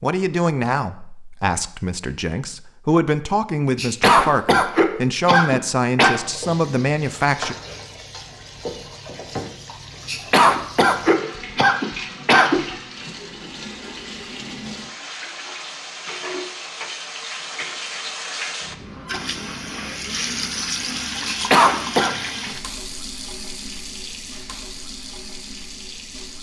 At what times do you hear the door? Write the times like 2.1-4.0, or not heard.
not heard.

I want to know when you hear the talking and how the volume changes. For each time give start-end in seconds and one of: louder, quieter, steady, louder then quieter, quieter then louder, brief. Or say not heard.
0.0-7.5 steady.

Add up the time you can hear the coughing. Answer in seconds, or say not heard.
6 s.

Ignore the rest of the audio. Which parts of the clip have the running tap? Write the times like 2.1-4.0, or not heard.
6.1-26.3.